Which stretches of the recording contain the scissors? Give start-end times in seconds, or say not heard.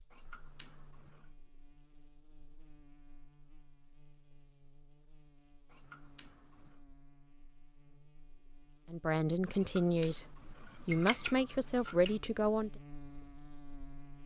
0.1-1.2, 5.7-6.3, 9.6-12.2.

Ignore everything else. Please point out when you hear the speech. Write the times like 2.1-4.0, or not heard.
8.9-12.7.